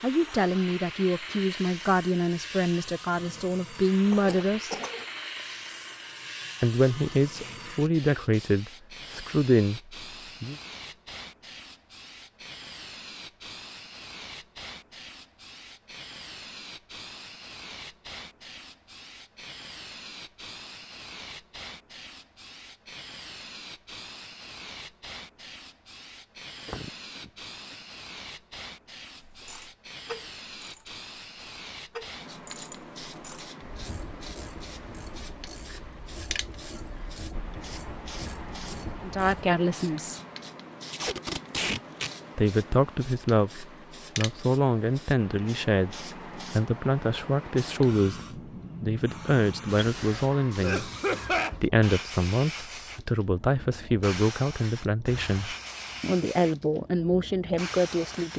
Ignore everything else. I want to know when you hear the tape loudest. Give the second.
42 s.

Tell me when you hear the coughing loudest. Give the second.
51 s.